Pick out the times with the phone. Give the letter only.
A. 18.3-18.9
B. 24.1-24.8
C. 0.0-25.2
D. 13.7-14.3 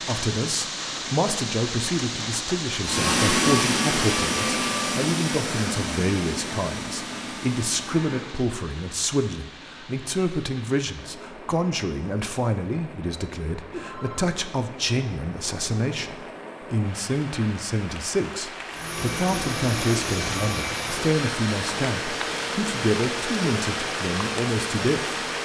D.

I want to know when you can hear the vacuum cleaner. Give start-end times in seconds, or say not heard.
2.8-8.4, 18.7-25.4.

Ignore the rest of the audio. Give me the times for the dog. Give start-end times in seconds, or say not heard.
not heard.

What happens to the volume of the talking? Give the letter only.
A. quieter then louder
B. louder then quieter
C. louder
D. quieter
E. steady
E.